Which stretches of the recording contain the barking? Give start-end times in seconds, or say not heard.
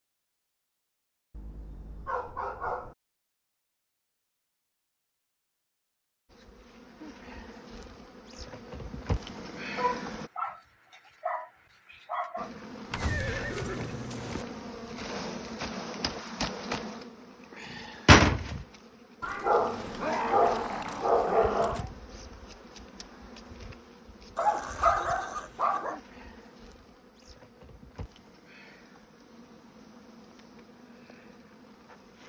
1.3-3.0, 9.8-12.5, 19.2-21.9, 24.4-26.0.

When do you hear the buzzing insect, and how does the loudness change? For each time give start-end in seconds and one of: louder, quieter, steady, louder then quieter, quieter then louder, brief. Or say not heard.
6.2-10.3 louder
12.3-32.2 louder then quieter.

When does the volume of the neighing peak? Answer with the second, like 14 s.
13 s.